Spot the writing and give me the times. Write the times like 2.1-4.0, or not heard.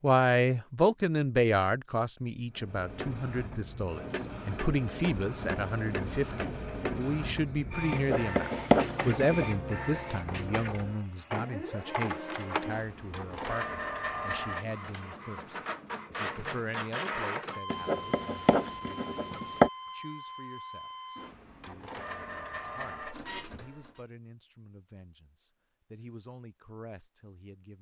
7.9-9.5, 17.7-19.7.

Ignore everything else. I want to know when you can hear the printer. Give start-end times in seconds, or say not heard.
2.5-24.1.